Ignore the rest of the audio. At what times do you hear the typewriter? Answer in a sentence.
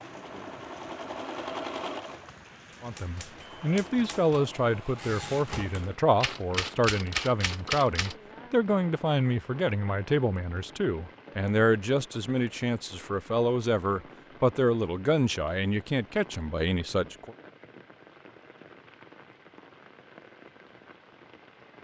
The typewriter can be heard from 2.8 to 8.2 s.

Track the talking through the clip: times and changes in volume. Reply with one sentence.
You can hear the talking from 2.8 to 17.4 s, at a steady volume.